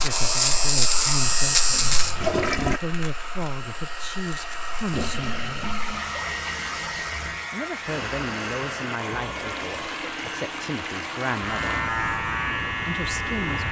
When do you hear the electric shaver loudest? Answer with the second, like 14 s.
1 s.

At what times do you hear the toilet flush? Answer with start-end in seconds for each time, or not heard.
1.7-2.8, 4.9-7.5, 9.3-11.8.